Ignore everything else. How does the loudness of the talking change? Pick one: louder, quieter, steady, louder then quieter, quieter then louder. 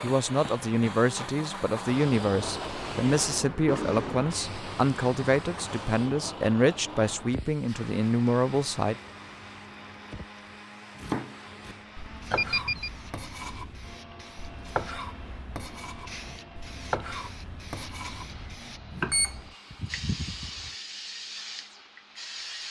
steady.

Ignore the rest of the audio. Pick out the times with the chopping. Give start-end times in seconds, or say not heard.
10.9-19.2.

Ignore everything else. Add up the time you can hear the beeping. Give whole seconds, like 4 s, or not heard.
3 s.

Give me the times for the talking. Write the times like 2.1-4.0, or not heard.
0.0-8.9.